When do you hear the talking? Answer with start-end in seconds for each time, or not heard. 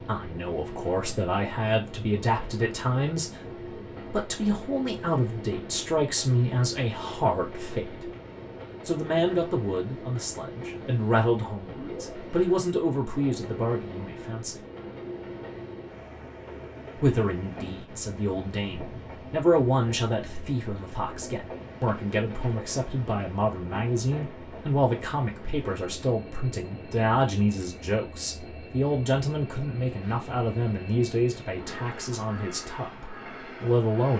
0.1-3.4, 4.0-8.1, 8.8-14.6, 16.9-34.1.